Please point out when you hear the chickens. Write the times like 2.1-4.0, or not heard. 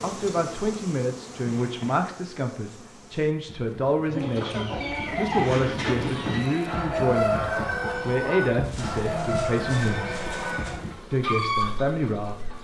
4.0-12.5.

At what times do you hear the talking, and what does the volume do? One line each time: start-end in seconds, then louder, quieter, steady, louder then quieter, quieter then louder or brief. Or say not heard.
0.0-10.2 steady
11.1-12.4 brief.